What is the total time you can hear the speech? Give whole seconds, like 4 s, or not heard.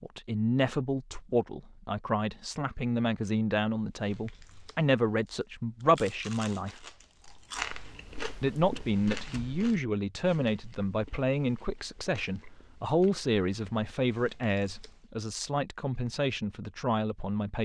16 s.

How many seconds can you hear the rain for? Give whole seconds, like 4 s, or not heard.
not heard.